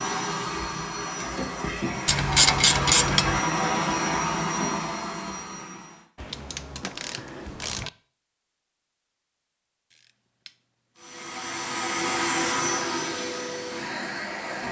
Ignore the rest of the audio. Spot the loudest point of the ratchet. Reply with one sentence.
The volume of the ratchet peaks at 3 seconds.